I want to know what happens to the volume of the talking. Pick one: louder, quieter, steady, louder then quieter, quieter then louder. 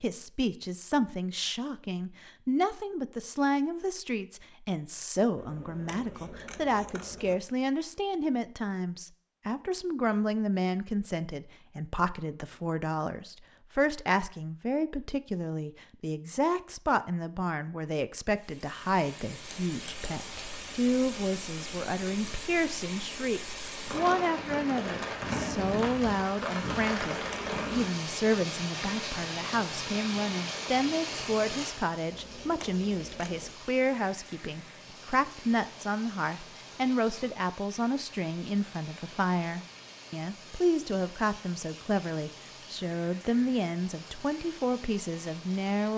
steady.